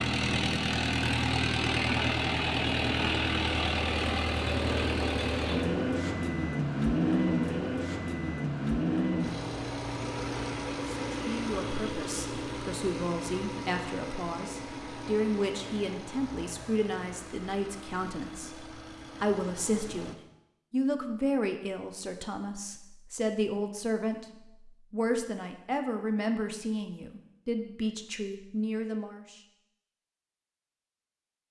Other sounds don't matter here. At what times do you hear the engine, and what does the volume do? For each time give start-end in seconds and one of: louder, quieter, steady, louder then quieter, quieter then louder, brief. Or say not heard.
0.0-20.1 quieter.